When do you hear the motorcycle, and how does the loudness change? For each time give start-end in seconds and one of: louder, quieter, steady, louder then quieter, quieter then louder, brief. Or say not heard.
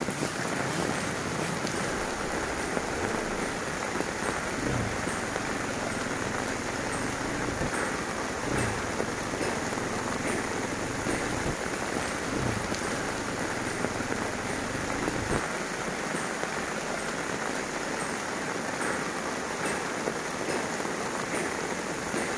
0.0-15.4 steady.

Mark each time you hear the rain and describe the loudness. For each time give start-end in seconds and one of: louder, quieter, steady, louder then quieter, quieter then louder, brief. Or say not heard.
0.0-22.3 steady.